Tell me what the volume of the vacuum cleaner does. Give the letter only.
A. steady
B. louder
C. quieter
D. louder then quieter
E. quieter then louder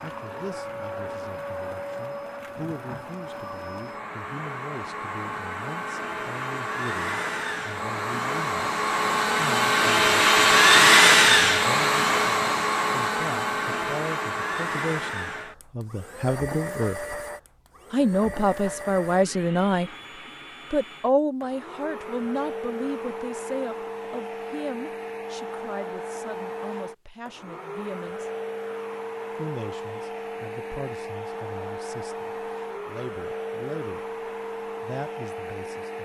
D.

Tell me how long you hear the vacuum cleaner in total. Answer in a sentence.
The vacuum cleaner can be heard for 36 seconds in total.